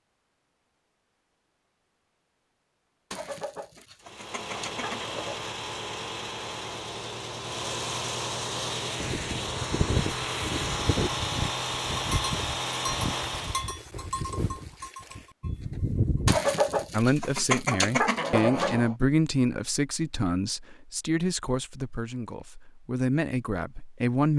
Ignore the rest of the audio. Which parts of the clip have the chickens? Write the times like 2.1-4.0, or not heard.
3.1-5.5, 16.2-18.9.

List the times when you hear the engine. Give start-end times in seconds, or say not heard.
4.0-13.8.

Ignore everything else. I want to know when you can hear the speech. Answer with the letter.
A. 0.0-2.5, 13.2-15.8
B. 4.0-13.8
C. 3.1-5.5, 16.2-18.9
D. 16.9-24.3
D.